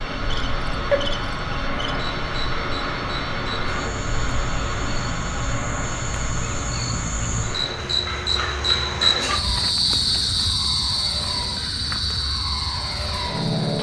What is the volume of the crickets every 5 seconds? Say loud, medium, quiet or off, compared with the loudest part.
medium, loud, loud.